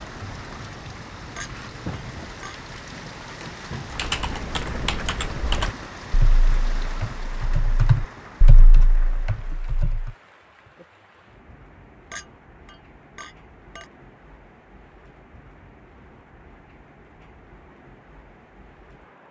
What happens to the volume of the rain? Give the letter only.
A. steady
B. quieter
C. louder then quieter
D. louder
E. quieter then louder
B.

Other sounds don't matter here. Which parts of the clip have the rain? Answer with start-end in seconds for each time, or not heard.
0.0-19.2.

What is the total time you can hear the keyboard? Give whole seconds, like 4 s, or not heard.
6 s.